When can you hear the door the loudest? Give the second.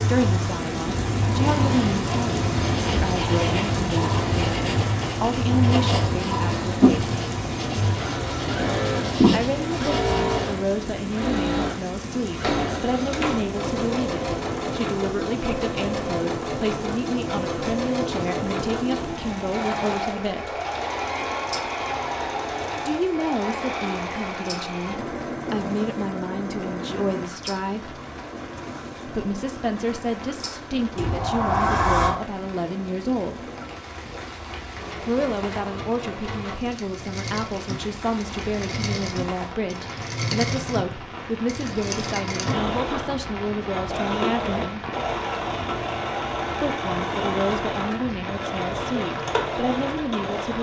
32 s.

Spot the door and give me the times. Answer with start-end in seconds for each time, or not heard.
12.4-13.6, 30.9-32.2.